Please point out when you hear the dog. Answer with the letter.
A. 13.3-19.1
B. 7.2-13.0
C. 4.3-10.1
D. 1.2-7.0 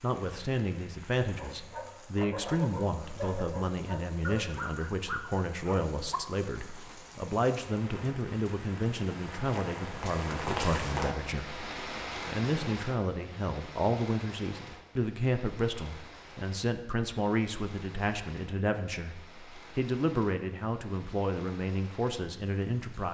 D.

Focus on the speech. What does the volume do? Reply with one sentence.
The volume of the speech stays about the same.